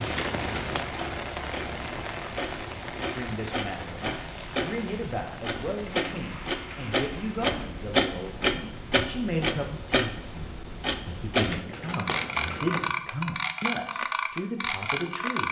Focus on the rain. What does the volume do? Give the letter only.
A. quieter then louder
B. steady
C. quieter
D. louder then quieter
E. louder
C.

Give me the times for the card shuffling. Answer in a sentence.
The card shuffling can be heard from 0.0 to 0.9 s and from 11.3 to 12.9 s.